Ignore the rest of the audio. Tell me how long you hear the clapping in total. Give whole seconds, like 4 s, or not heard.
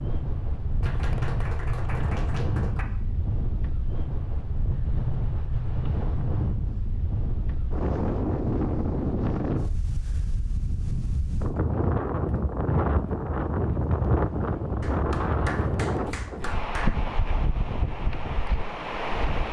4 s.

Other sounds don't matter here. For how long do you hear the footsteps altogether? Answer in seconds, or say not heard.
not heard.